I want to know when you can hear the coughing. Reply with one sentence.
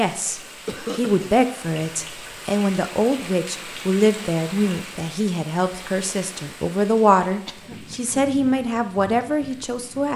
You can hear the coughing from 0.7 to 1.3 s and from 7.5 to 8.0 s.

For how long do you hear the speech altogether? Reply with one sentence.
You can hear the speech for 10 seconds altogether.